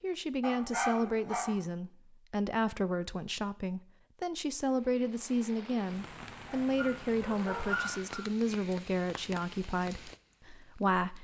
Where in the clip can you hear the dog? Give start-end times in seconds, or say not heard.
0.4-1.6, 6.5-8.2.